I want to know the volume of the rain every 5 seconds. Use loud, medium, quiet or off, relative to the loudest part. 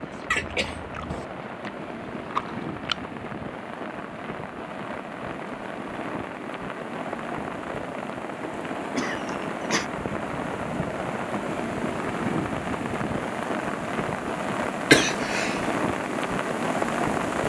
medium, medium, loud, loud.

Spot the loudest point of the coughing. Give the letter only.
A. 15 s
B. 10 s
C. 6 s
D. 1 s
A.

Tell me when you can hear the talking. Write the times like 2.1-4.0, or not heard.
not heard.